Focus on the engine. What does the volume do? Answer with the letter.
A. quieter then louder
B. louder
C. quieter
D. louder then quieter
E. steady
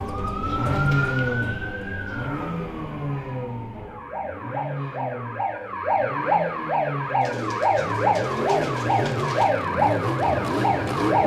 A.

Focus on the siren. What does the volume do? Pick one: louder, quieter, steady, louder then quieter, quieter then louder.
quieter then louder.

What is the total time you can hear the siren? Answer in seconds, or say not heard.
11 s.